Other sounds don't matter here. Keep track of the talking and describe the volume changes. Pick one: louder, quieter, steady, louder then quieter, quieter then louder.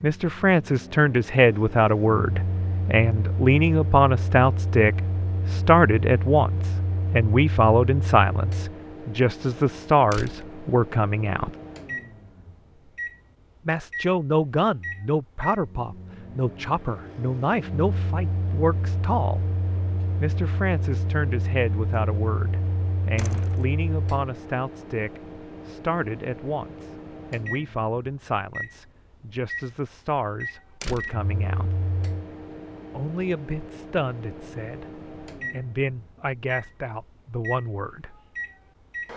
quieter.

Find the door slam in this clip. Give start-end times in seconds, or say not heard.
10.1-10.6, 23.1-23.6, 30.8-31.2.